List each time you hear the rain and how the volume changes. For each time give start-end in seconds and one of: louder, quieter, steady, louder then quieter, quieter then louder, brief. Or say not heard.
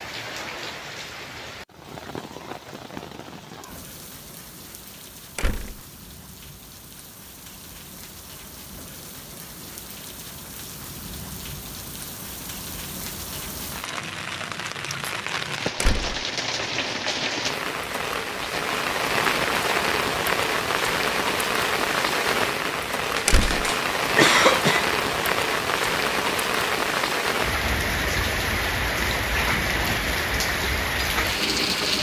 0.0-31.9 louder.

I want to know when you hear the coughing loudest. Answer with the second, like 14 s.
24 s.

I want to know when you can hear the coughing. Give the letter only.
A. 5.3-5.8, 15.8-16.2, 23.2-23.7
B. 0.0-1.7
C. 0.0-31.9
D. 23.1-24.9
D.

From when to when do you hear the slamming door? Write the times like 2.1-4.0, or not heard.
5.3-5.8, 15.8-16.2, 23.2-23.7.